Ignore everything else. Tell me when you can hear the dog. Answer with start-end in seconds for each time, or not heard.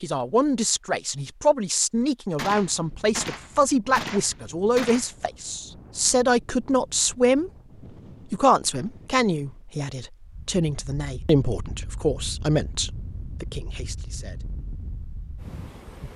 not heard.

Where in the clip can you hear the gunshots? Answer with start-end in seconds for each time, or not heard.
2.4-5.1.